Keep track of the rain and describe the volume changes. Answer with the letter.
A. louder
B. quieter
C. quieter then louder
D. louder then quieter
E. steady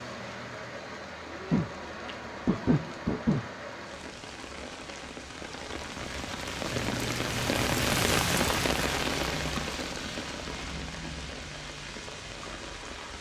D.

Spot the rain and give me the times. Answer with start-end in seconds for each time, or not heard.
0.0-13.1.